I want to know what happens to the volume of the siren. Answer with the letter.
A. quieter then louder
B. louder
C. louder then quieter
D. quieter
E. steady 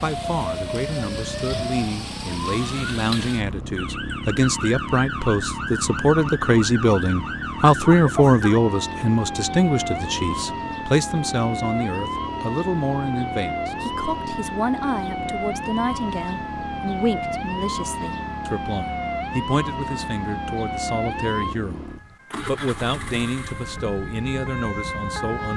E.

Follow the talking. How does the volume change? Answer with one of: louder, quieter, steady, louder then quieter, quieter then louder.
louder then quieter.